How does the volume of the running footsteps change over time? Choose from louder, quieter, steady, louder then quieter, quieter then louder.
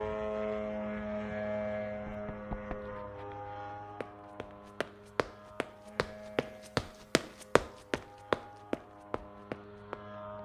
louder.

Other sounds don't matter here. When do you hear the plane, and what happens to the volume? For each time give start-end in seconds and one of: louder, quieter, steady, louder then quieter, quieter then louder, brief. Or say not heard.
0.0-10.3 quieter.